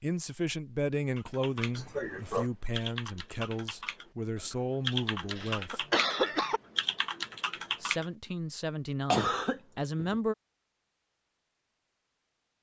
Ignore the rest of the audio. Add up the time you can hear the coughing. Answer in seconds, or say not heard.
3 s.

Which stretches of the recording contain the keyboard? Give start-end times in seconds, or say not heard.
1.1-8.1.